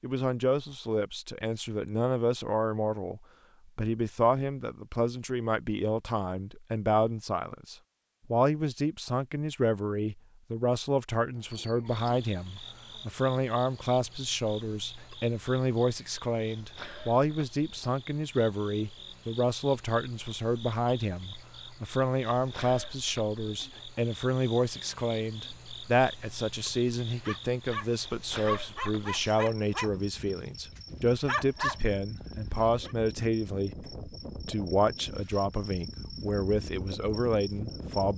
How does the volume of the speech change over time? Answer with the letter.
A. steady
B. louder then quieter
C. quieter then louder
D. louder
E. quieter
A.